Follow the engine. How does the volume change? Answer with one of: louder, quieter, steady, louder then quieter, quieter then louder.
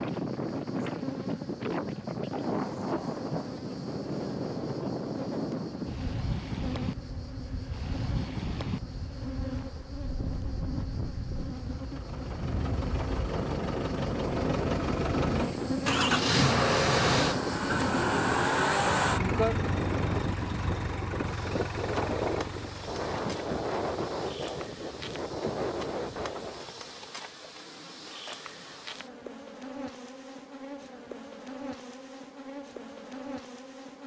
louder then quieter.